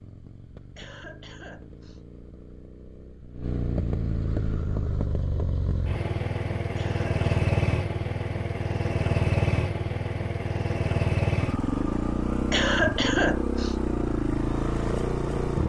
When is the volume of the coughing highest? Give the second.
13 s.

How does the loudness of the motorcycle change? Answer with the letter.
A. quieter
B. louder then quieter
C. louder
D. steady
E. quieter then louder
C.